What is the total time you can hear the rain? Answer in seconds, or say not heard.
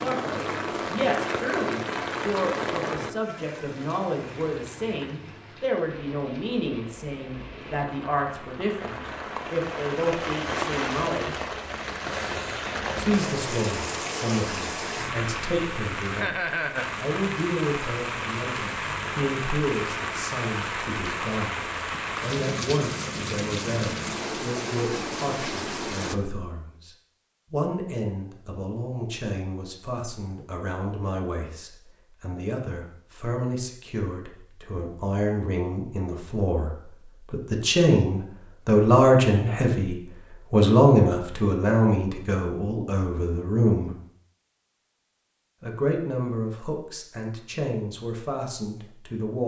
26 s.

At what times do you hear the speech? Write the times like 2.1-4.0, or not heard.
0.0-11.3, 12.9-26.9, 27.5-44.0, 45.6-49.4.